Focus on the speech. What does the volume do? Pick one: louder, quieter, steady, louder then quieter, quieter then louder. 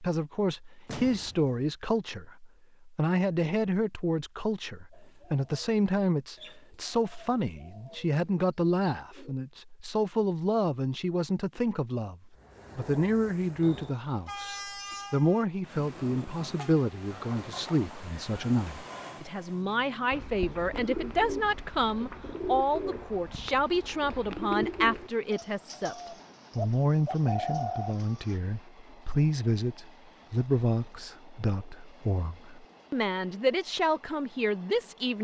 steady.